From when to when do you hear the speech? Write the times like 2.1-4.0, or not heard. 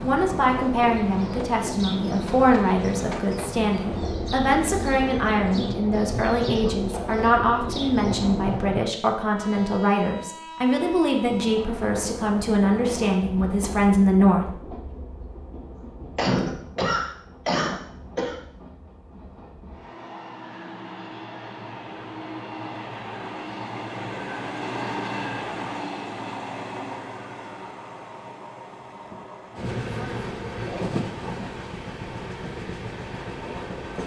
0.0-14.7.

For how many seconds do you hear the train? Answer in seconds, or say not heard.
34 s.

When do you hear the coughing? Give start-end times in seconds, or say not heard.
15.8-18.4.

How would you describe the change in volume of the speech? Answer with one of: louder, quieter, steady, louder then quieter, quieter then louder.
steady.